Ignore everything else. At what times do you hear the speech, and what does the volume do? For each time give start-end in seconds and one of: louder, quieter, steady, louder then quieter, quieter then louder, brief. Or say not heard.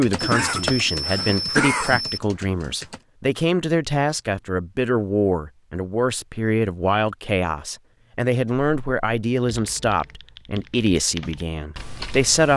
0.0-12.5 steady.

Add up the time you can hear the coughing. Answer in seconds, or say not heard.
2 s.